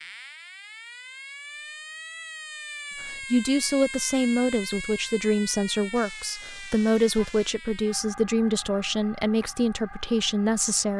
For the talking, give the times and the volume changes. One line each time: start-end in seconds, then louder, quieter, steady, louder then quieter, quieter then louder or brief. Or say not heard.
3.0-10.9 steady.